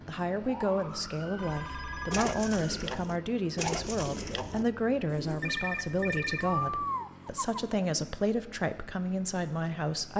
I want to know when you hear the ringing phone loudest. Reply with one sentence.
The loudest moment of the ringing phone is at 6 seconds.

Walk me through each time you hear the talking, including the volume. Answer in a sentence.
The talking can be heard from 0.1 to 10.1 s, at a steady volume.